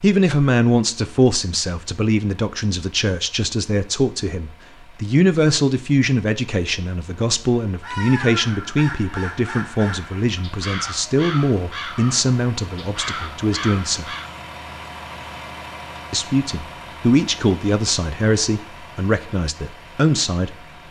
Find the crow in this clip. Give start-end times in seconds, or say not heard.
7.8-14.3.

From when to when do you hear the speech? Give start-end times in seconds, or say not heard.
0.0-14.2, 16.1-20.6.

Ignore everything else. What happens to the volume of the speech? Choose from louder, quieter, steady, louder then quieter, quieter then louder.
steady.